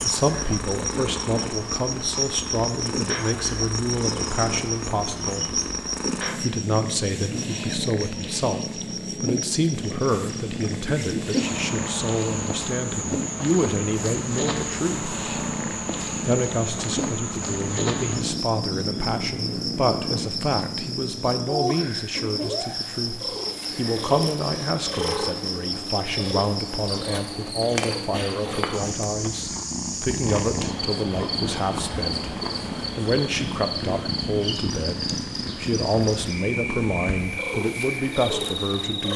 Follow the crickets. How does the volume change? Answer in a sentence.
The volume of the crickets stays about the same.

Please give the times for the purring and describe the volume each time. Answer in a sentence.
The purring can be heard from 0.0 to 39.1 s, at a steady volume.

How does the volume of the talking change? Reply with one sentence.
The loudness of the talking stays about the same.